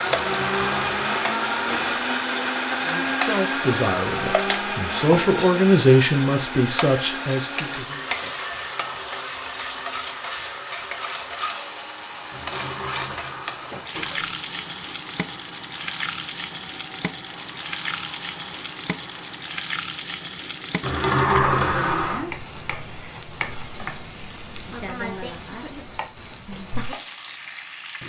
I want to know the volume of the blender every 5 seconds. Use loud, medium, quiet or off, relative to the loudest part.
loud, medium, quiet, quiet, off, off.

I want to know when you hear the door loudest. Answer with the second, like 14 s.
21 s.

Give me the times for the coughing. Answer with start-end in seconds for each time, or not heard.
not heard.